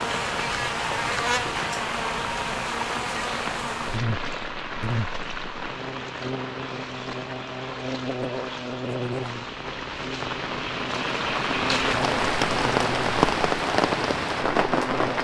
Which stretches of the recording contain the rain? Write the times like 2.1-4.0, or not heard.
0.0-15.1.